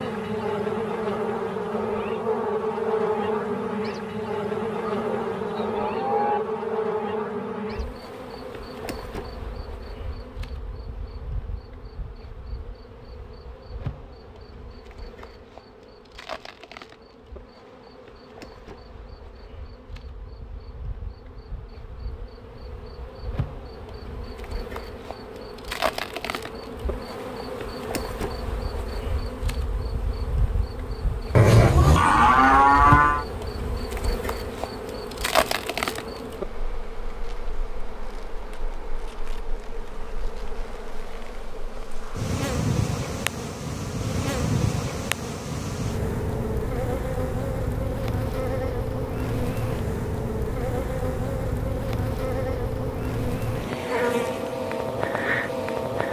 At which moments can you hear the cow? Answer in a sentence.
The cow can be heard from 4.8 to 6.4 s and from 31.4 to 33.2 s.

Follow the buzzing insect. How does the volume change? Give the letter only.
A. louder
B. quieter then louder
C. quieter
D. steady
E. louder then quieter
B.